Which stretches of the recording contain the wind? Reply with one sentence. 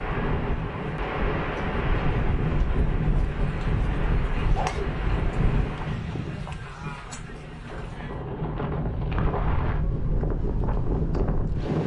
The wind can be heard from 0.0 to 11.8 s.